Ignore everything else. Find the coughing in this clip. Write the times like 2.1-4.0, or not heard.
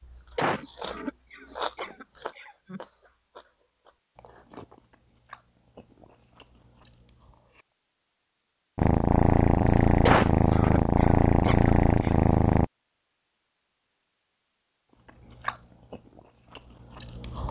0.3-2.8, 10.1-12.2.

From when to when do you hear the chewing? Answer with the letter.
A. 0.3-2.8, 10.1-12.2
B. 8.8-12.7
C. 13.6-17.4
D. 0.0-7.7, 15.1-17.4
D.